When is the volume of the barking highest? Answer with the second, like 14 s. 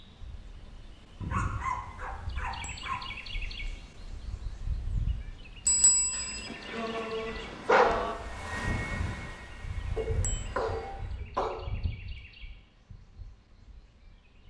8 s.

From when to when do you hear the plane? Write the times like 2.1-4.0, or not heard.
6.3-11.2.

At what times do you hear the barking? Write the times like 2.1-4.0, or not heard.
1.2-3.0, 6.2-8.2, 9.9-11.6.